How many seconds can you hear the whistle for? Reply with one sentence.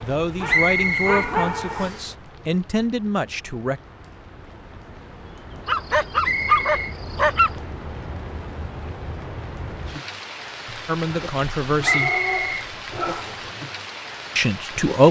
The whistle can be heard for 4 seconds in total.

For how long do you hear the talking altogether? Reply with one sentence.
The talking can be heard for 6 seconds in total.